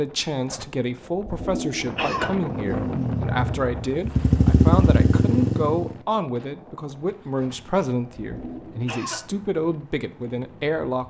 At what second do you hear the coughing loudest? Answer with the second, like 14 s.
2 s.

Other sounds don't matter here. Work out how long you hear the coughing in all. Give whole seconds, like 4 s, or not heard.
4 s.